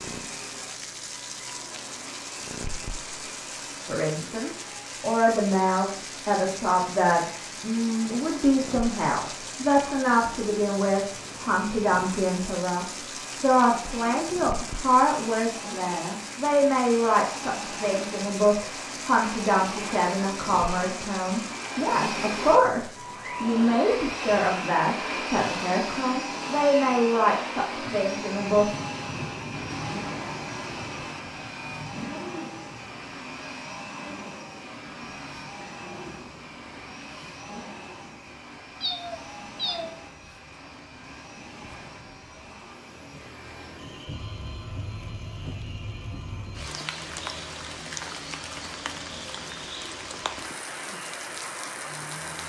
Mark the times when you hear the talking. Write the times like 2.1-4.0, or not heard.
3.9-28.7.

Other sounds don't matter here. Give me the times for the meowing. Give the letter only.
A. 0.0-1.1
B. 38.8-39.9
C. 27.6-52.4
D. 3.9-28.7
B.